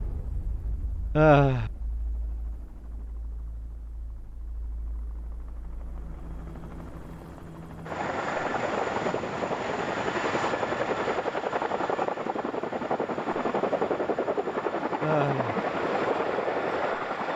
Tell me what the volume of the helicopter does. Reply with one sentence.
The loudness of the helicopter goes up.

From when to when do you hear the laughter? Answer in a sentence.
The laughter can be heard from 1.1 to 1.7 s and from 15.0 to 15.6 s.